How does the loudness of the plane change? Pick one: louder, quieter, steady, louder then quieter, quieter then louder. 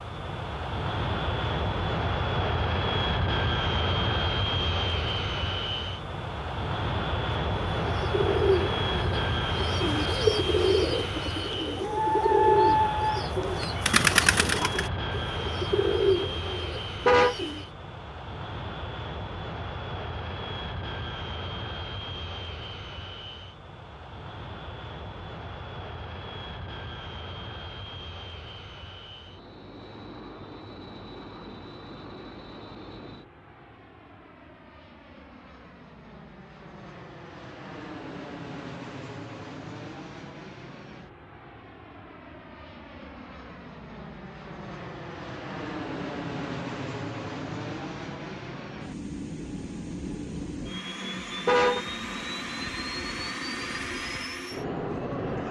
quieter then louder.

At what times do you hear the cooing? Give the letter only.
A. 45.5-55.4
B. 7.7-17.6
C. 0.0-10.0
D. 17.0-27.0
B.